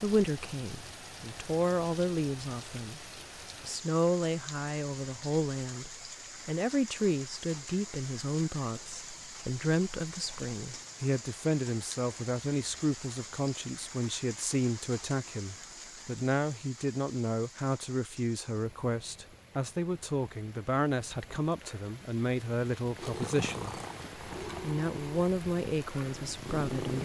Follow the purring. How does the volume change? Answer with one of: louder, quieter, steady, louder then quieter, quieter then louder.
quieter then louder.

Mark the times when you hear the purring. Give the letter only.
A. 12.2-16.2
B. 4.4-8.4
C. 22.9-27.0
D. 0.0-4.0
C.